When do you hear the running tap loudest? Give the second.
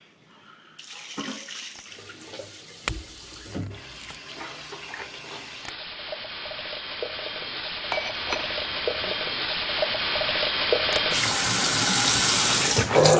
13 s.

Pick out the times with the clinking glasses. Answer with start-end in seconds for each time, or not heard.
2.9-4.2, 7.9-8.9.